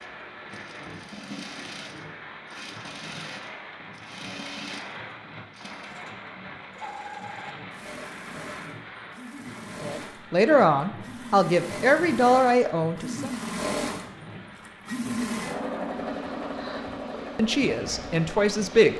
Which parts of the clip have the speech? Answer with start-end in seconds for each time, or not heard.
9.8-13.3, 17.4-18.9.